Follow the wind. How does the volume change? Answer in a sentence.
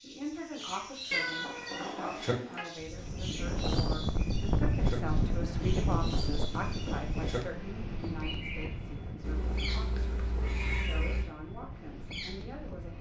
The volume of the wind goes down.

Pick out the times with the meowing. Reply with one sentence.
The meowing can be heard from 1.1 to 2.6 s, from 5.7 to 6.8 s and from 9.2 to 11.2 s.